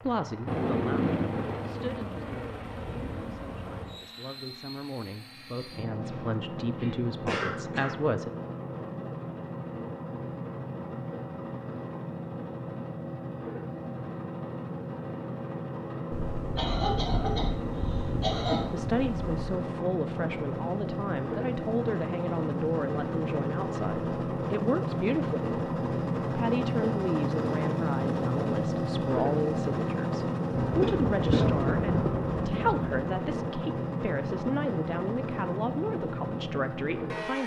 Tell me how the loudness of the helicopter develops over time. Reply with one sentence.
The volume of the helicopter goes up.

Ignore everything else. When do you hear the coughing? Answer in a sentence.
You can hear the coughing from 6.0 to 7.9 s, from 16.6 to 18.6 s and from 30.6 to 31.6 s.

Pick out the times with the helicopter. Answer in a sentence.
You can hear the helicopter from 0.0 to 37.4 s.